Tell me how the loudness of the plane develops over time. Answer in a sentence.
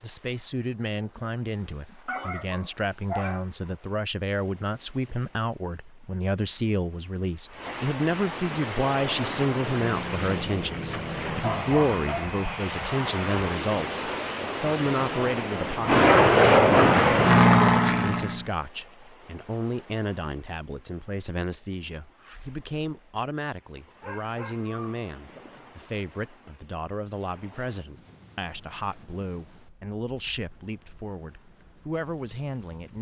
The volume of the plane goes up.